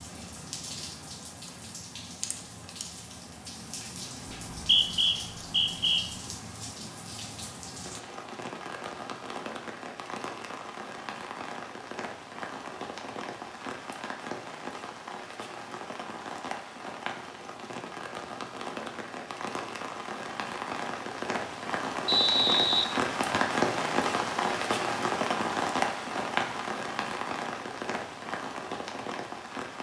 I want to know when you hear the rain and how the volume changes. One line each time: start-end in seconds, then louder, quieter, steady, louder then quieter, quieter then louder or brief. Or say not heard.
0.0-29.7 louder.